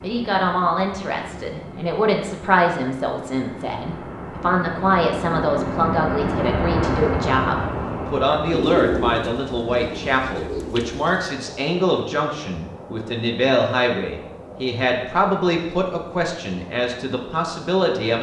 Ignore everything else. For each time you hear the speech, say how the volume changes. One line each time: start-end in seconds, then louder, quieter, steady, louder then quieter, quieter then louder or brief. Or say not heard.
0.0-18.1 steady.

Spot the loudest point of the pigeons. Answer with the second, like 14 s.
9 s.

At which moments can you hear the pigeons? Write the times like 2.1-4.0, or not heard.
8.5-11.3.